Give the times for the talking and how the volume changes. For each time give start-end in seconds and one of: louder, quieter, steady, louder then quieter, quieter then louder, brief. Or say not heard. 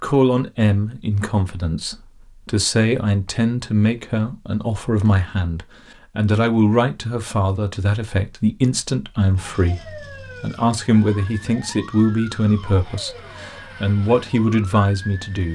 0.0-15.4 steady.